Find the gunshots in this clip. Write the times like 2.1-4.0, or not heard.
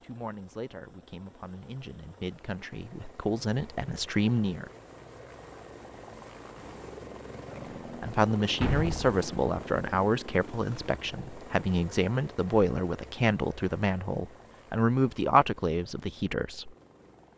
8.6-9.2.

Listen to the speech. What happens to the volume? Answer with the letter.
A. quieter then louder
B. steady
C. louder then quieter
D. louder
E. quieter
D.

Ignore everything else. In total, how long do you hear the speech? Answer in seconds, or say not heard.
14 s.